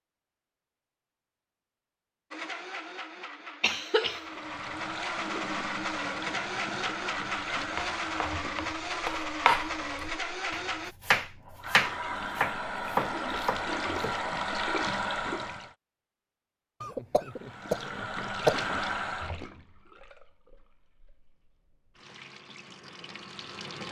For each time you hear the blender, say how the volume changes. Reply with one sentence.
The blender can be heard from 2.3 to 10.9 s, getting louder.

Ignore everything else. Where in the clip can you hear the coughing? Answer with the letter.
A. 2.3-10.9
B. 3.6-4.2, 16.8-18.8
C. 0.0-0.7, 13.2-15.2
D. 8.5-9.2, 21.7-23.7
B.